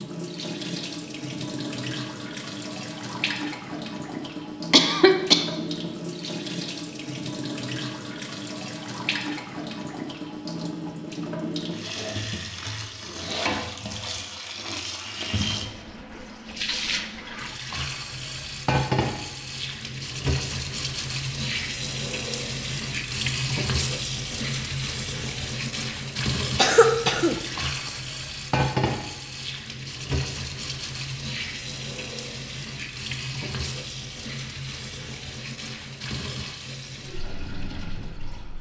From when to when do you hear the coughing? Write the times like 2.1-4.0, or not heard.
4.7-5.5, 26.6-28.0.